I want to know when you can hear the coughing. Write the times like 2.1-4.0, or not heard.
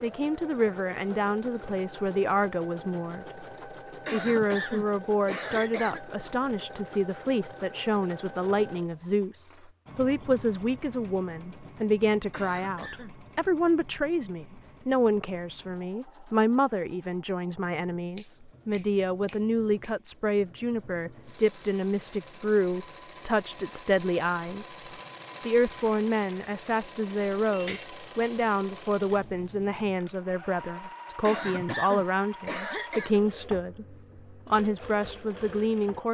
4.0-6.0, 12.3-13.2, 31.2-33.2.